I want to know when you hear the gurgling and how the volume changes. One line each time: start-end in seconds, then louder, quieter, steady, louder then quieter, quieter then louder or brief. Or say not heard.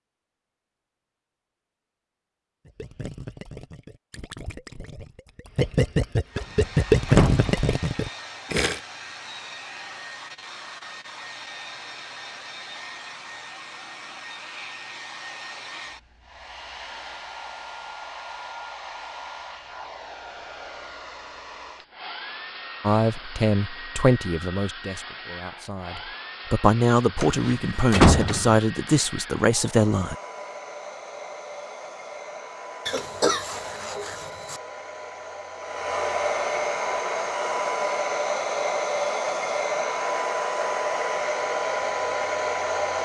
2.6-8.8 louder then quieter.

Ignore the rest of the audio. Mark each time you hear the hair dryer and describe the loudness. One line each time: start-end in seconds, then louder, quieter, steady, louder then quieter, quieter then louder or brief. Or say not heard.
6.2-42.9 louder.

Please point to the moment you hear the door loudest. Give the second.
28 s.